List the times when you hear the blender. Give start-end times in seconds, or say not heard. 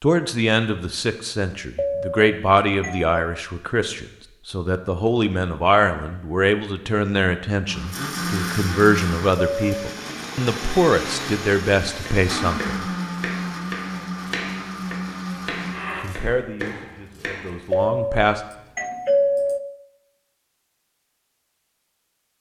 7.7-16.1.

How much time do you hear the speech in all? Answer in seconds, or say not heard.
15 s.